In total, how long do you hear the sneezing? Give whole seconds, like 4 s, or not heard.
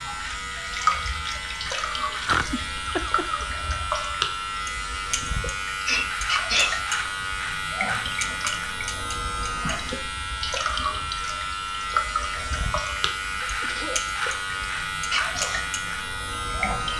3 s.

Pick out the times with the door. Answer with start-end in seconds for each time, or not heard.
not heard.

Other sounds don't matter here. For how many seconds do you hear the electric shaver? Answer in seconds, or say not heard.
17 s.